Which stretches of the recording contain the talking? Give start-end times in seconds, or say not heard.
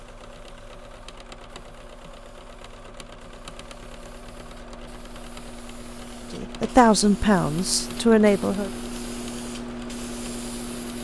6.3-8.7.